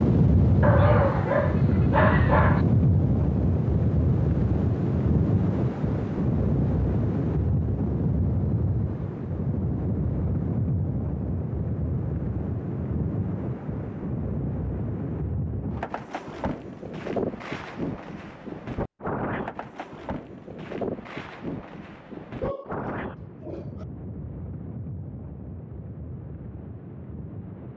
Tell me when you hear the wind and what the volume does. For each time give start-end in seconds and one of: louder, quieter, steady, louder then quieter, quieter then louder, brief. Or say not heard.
0.0-27.7 quieter.